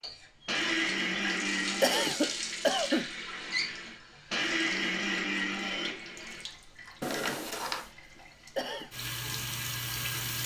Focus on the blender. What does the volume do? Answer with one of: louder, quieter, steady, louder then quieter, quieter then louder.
quieter then louder.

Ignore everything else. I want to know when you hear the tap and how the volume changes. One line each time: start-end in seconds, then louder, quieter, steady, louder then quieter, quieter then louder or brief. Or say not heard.
0.0-10.4 quieter then louder.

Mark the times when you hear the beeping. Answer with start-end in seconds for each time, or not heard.
7.0-7.9.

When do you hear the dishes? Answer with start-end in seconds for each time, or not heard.
not heard.